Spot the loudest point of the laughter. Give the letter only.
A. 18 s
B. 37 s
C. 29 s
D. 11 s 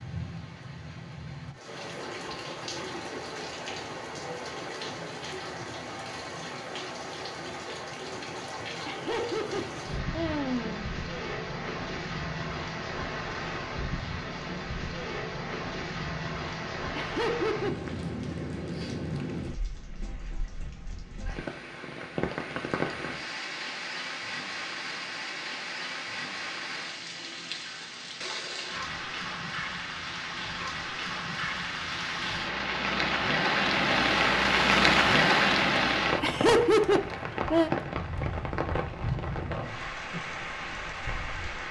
B.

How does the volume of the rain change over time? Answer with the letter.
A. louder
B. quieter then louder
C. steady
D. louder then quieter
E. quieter
A.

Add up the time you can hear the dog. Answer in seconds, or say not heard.
not heard.